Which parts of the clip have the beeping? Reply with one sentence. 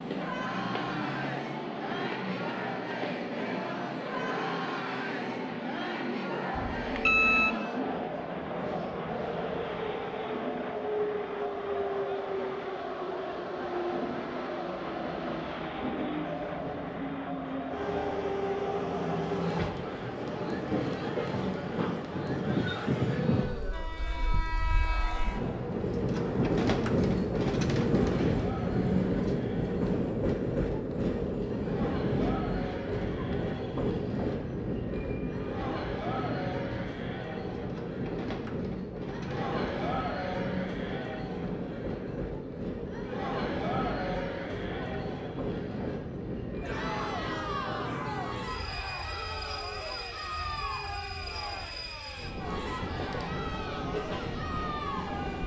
You can hear the beeping from 6.6 to 7.5 s.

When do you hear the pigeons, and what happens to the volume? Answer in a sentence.
The pigeons can't be heard in this clip.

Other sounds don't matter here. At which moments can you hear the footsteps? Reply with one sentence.
The footsteps can't be heard in this clip.